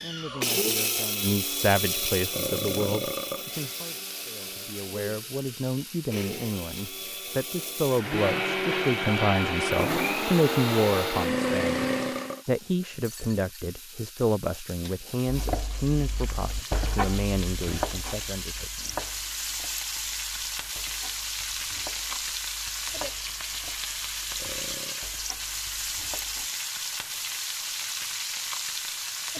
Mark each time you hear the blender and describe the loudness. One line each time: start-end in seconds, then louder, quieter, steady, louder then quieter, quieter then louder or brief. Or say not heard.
0.0-12.4 quieter then louder.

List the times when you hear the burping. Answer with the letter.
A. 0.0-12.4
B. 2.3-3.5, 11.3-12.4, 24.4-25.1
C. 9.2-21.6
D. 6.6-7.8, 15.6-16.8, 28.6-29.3
B.